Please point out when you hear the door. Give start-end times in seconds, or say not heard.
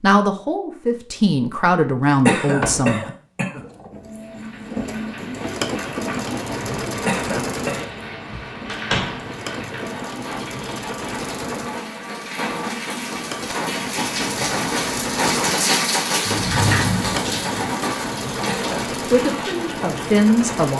2.5-2.9, 8.3-9.2, 16.2-17.7.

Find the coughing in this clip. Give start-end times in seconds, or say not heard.
2.2-3.6, 7.0-7.9, 18.4-18.9.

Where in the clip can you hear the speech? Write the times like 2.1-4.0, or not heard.
0.0-3.1, 19.1-20.7.